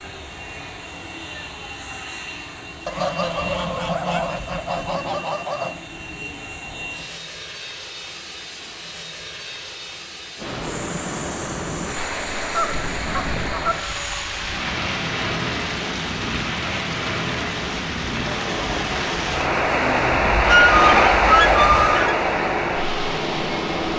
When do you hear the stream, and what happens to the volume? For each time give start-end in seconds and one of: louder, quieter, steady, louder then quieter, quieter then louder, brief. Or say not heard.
10.3-23.9 louder.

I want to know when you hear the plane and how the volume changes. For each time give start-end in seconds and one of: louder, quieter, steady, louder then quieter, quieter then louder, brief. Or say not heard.
0.0-23.9 louder.